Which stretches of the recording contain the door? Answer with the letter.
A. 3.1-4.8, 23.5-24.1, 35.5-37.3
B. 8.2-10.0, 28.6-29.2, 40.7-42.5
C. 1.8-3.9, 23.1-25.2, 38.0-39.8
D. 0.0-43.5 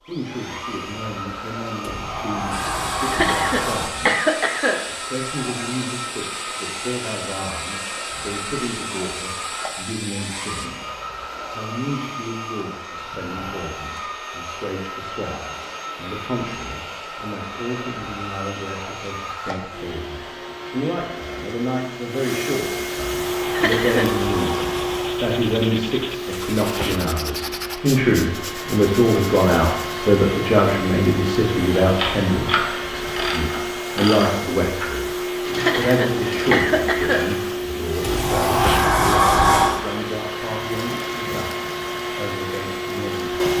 C.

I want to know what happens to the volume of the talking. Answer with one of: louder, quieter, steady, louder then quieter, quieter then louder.
louder then quieter.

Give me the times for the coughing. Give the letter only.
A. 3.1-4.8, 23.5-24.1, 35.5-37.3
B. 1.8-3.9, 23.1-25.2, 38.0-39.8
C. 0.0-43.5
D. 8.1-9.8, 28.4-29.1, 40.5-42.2
A.